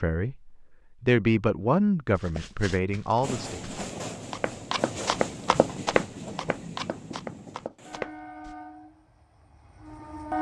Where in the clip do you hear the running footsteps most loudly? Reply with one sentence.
The loudest moment of the running footsteps is at 6 seconds.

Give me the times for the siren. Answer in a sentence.
The siren can't be heard in this clip.